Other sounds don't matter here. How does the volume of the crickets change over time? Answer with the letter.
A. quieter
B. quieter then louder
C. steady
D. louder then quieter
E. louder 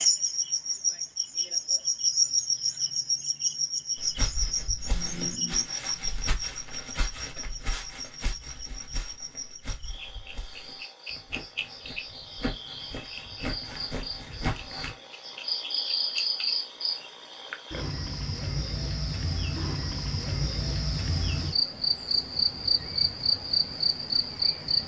B.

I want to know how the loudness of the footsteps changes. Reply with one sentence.
The loudness of the footsteps goes down, then up.